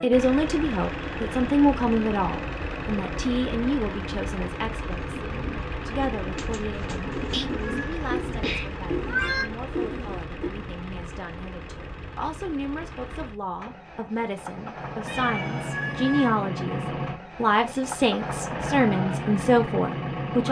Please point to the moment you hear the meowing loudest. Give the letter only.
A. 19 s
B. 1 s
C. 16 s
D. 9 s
D.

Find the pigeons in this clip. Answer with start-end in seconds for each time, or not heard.
5.0-10.5.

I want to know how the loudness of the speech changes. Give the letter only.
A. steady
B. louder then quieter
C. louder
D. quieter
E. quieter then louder
E.